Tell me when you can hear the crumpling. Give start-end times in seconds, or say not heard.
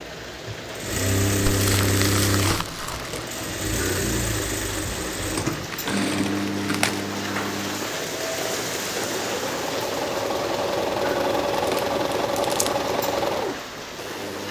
1.4-3.2, 5.7-7.0, 11.6-12.8.